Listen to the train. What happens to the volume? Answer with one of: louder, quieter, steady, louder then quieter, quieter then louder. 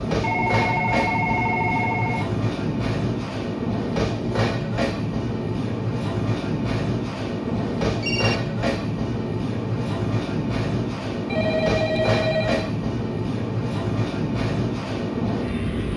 steady.